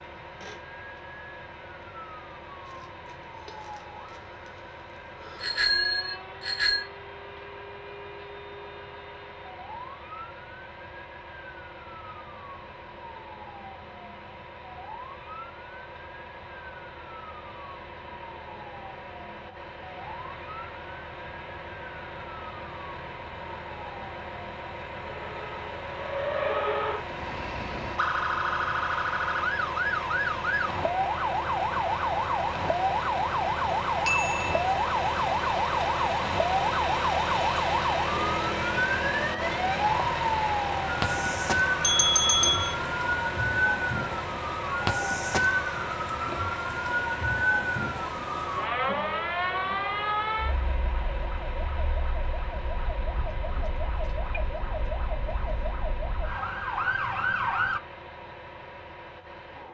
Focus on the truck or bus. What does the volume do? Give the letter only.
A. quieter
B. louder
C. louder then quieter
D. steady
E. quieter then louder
C.